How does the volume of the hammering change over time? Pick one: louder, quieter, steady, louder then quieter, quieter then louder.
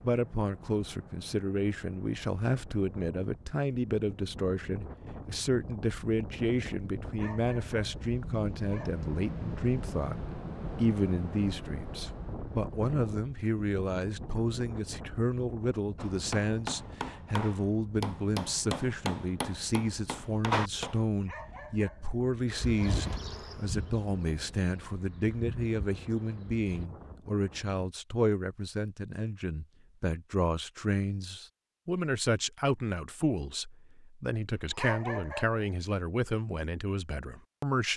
louder.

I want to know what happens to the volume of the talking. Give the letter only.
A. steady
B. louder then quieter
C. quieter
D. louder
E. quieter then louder
A.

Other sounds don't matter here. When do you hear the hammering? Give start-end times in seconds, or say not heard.
15.9-21.1.